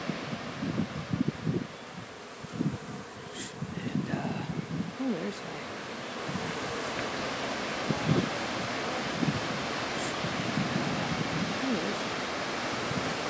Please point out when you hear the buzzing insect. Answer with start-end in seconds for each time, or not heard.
0.0-13.2.